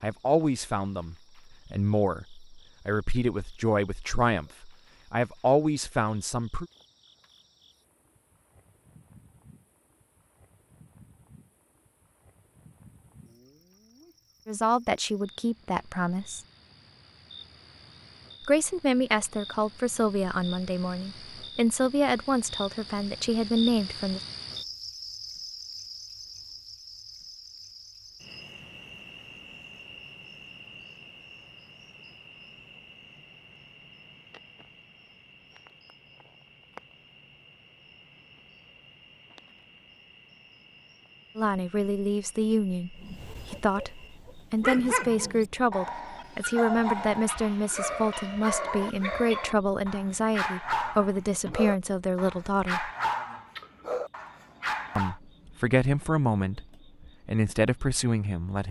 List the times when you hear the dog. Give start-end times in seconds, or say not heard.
43.0-55.1.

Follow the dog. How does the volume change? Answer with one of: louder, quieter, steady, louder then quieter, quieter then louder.
steady.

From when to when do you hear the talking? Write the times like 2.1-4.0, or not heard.
0.0-6.7, 14.4-16.4, 18.4-24.2, 41.4-52.9, 55.0-58.6.